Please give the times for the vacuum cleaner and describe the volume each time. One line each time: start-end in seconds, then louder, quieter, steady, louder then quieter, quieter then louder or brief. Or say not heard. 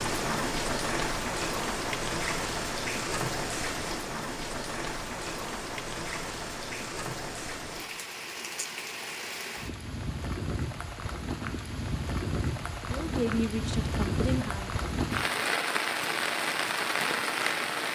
not heard.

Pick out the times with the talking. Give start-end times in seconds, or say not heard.
12.9-14.8.